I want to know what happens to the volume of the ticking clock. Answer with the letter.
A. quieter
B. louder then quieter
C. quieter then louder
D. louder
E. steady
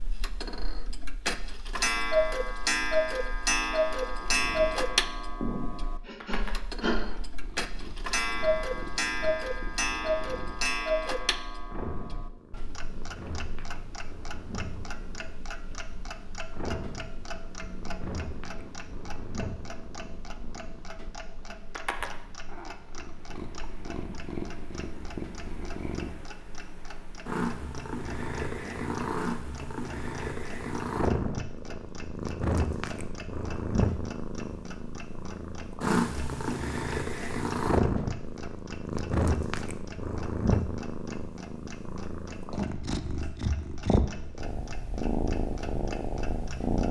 A.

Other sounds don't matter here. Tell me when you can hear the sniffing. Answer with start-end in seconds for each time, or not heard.
5.4-7.0.